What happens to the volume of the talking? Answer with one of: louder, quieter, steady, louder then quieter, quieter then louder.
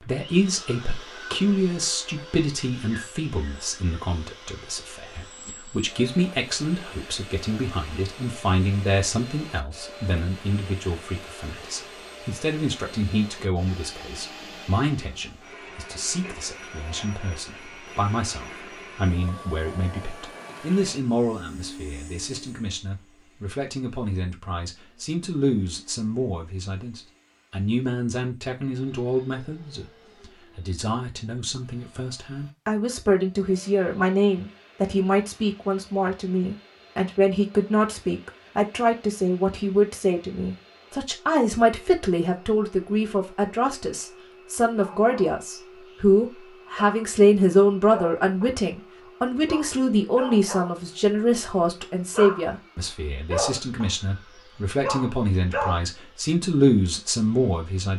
louder.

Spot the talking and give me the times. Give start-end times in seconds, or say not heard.
0.0-57.9.